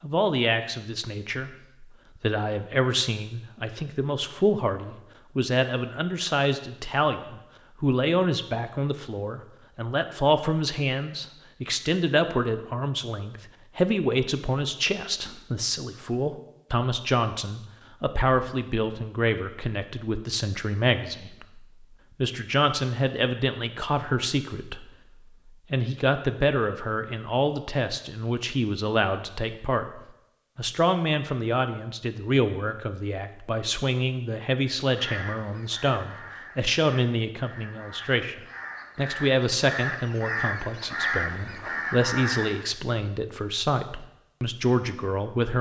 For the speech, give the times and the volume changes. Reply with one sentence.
You can hear the speech from 0.0 to 45.5 s, at a steady volume.